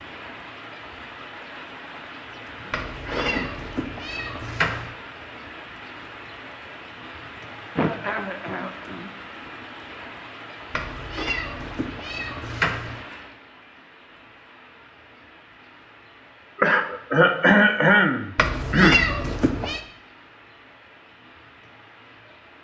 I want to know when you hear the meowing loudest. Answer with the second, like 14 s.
19 s.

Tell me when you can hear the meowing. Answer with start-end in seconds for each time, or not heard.
2.7-4.9, 10.7-13.0, 18.4-19.8.